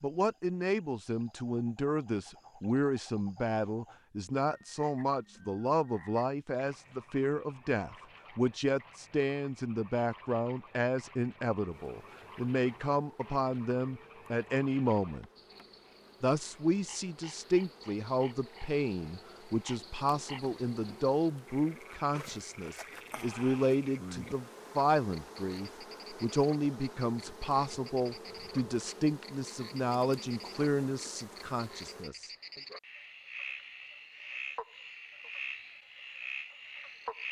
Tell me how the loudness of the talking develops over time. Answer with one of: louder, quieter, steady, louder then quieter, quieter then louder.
steady.